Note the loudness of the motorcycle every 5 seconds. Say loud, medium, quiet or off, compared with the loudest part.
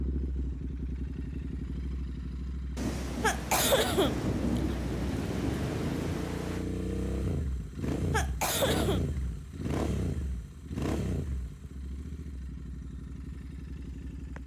medium, loud, medium.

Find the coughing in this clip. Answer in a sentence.
The coughing can be heard from 3.2 to 4.8 s and from 8.1 to 9.0 s.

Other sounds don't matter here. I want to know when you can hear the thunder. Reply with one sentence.
You can hear the thunder from 2.8 to 6.7 s.